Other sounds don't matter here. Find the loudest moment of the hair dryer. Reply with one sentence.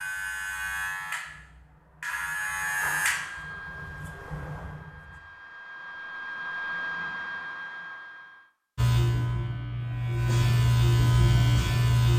The loudest moment of the hair dryer is at 7 seconds.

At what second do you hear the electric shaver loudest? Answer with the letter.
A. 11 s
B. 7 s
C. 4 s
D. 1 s
A.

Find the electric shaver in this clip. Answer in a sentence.
The electric shaver can be heard from 0.0 to 5.2 s and from 8.8 to 12.1 s.